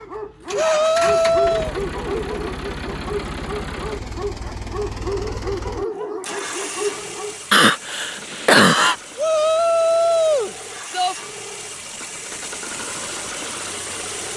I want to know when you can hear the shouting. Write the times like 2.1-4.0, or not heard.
0.6-1.8, 9.2-11.2.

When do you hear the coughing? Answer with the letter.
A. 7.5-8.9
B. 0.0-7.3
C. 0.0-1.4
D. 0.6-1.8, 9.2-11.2
A.